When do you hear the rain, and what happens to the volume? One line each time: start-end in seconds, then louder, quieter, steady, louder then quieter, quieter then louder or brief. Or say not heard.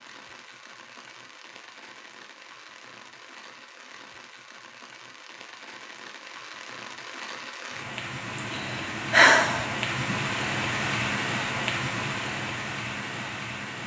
0.0-13.8 louder.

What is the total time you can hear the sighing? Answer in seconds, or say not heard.
2 s.